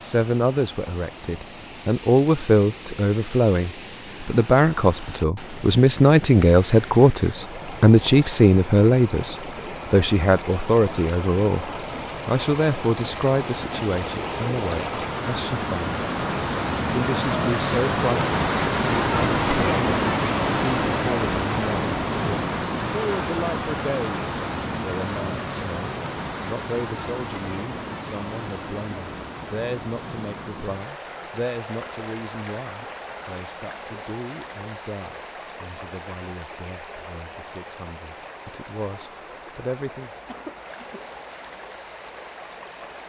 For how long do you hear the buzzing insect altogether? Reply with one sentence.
The buzzing insect can't be heard in this clip.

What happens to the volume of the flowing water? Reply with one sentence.
The volume of the flowing water goes up, then down.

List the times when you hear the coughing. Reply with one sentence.
The coughing can be heard from 40.2 to 41.0 s.